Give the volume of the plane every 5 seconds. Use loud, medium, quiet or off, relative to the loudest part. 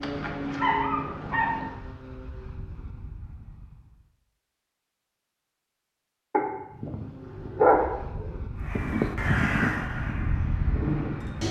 medium, medium, loud.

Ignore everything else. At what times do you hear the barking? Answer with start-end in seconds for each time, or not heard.
0.0-1.7, 6.3-8.3.